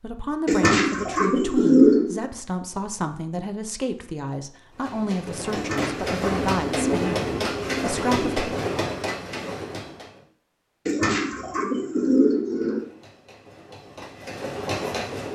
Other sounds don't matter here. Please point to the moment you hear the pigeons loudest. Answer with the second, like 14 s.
2 s.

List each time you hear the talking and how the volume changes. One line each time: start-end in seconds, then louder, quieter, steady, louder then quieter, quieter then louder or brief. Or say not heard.
0.0-8.4 steady.